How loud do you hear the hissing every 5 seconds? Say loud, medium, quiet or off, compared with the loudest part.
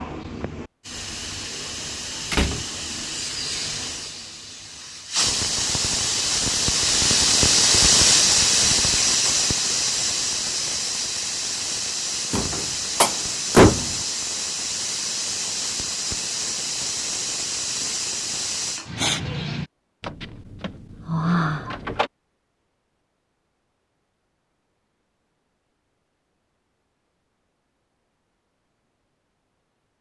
quiet, loud, medium, medium, off, off.